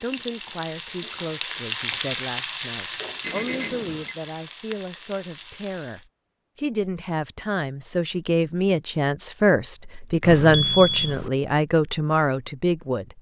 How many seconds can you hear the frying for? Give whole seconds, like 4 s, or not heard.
6 s.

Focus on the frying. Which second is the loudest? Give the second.
2 s.